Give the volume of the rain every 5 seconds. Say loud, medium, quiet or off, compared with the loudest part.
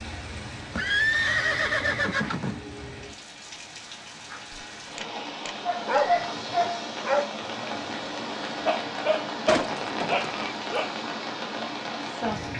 medium, loud, loud.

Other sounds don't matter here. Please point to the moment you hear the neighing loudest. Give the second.
1 s.